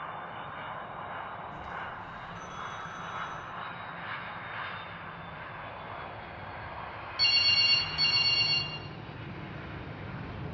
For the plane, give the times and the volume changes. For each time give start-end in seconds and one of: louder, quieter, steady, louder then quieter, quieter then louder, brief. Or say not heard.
0.0-10.4 steady.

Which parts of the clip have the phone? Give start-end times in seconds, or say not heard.
1.5-3.5, 7.2-8.6.